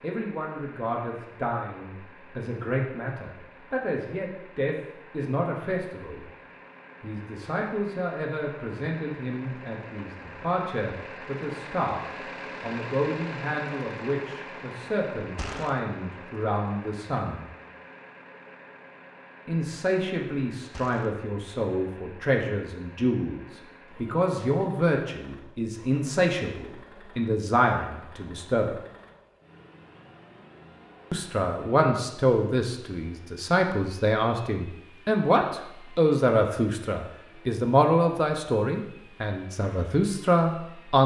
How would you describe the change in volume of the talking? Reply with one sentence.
The volume of the talking goes up.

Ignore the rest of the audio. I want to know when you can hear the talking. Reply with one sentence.
The talking can be heard from 0.0 to 6.2 s, from 7.0 to 12.0 s, from 12.6 to 17.4 s, from 19.4 to 28.8 s and from 31.1 to 41.0 s.